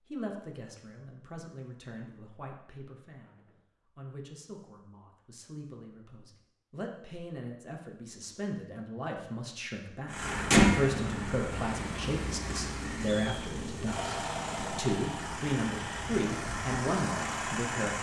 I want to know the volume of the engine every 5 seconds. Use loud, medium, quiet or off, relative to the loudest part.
off, off, loud, medium.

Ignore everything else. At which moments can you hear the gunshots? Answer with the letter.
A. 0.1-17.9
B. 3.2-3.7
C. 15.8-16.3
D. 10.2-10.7
B.